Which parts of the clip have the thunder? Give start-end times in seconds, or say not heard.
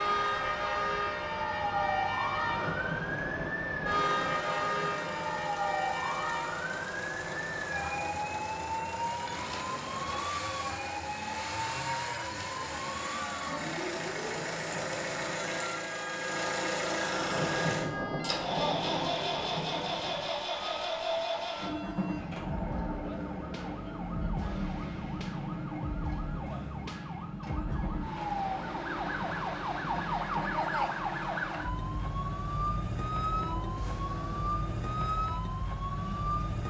2.4-5.5, 17.1-20.3, 29.1-30.5.